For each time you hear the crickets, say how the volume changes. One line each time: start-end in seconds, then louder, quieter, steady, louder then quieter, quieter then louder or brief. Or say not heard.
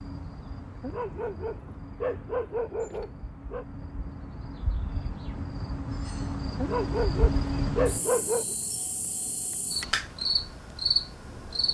0.0-11.7 louder.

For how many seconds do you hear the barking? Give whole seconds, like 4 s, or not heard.
5 s.